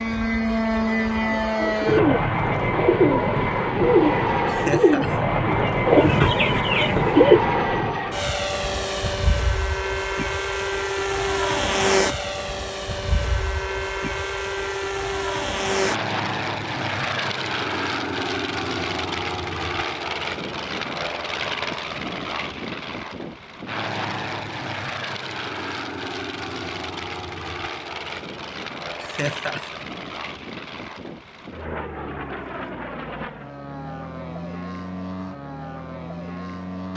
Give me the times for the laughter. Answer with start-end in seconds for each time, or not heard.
4.5-5.2, 29.0-29.8.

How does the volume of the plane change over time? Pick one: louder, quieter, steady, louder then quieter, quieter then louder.
quieter.